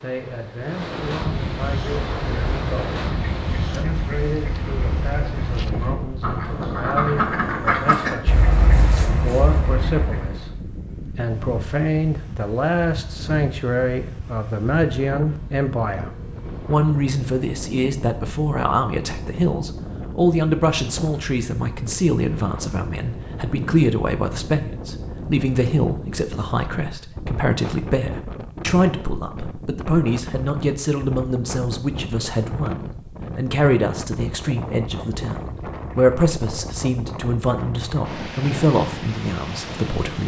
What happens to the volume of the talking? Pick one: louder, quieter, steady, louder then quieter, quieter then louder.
louder.